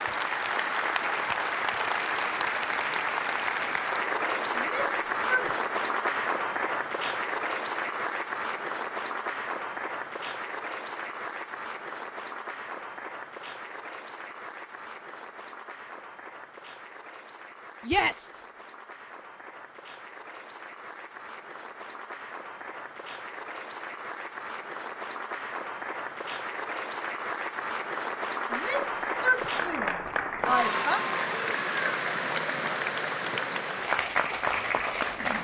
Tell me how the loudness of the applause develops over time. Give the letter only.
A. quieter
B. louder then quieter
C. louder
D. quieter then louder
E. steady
D.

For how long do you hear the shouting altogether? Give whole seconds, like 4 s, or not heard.
4 s.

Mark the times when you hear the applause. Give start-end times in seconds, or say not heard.
0.0-35.4.